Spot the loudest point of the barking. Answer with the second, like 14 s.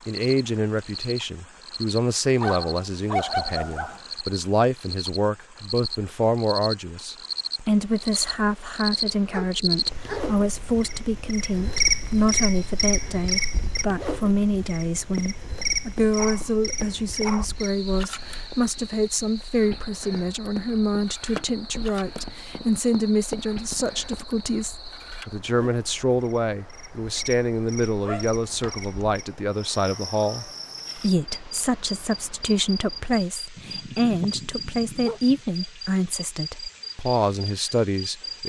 3 s.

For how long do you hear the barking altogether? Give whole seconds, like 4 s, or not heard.
7 s.